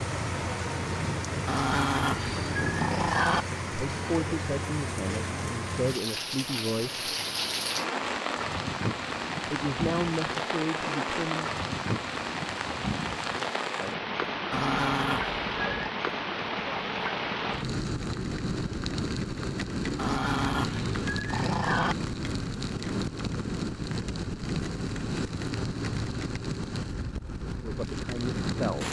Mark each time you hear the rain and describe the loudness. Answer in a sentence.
You can hear the rain from 0.0 to 28.8 s, at a steady volume.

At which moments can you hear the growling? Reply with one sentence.
The growling can be heard from 1.4 to 3.5 s, from 14.5 to 15.9 s and from 19.9 to 21.9 s.